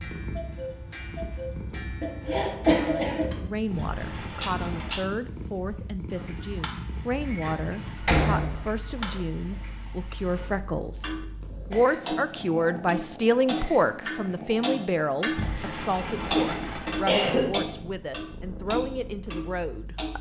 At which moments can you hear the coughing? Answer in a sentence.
The coughing can be heard from 2.0 to 3.2 s and from 16.6 to 17.6 s.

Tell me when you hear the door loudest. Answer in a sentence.
The volume of the door peaks at 8 seconds.